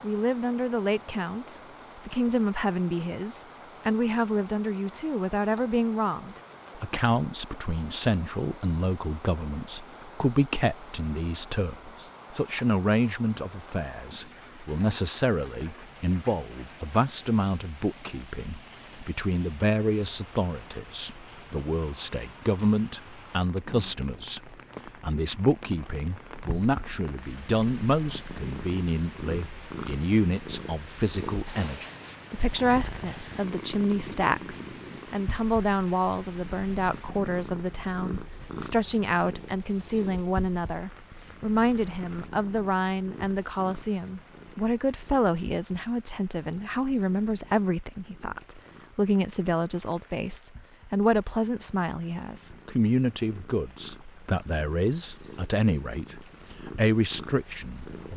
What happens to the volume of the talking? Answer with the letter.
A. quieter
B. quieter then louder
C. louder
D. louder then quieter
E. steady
E.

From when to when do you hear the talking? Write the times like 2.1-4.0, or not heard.
0.0-58.1.